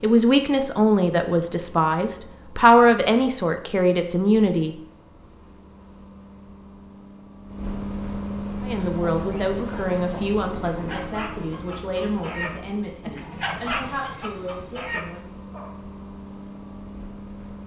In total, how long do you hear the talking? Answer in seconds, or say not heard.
11 s.